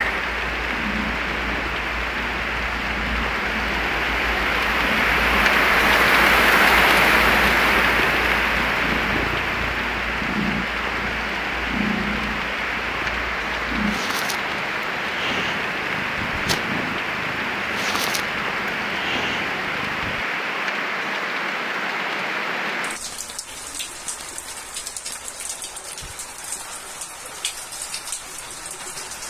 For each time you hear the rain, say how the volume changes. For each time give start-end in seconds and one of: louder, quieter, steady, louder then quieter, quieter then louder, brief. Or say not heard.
0.0-29.2 quieter.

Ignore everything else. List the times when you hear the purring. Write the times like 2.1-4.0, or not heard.
0.0-20.2.